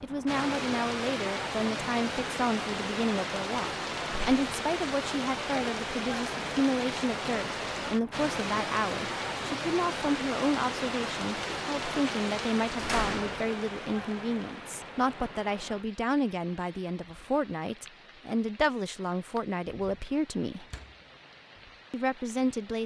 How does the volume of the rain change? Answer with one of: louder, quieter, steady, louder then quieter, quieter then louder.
quieter.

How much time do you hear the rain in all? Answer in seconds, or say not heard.
23 s.